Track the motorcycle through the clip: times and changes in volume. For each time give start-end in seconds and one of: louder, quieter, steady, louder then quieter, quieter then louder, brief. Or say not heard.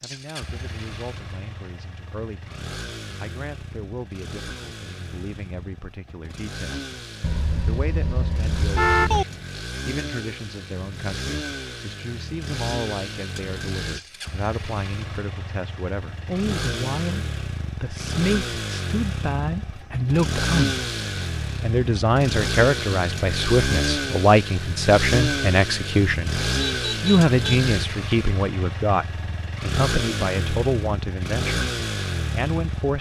0.0-32.9 louder.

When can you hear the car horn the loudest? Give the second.
9 s.